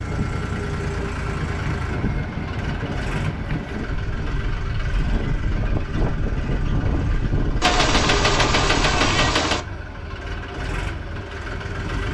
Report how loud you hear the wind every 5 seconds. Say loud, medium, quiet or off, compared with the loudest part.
loud, loud, off.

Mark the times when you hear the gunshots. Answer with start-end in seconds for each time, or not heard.
7.6-9.7.